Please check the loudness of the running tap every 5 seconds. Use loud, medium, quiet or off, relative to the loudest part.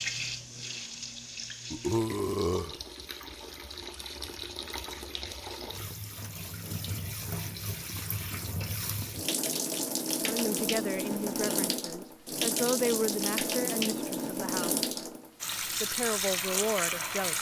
medium, medium, loud, loud.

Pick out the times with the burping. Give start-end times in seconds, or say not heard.
1.7-2.8.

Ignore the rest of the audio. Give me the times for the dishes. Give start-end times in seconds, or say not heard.
not heard.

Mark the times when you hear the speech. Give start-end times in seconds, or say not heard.
10.2-14.8, 15.8-17.3.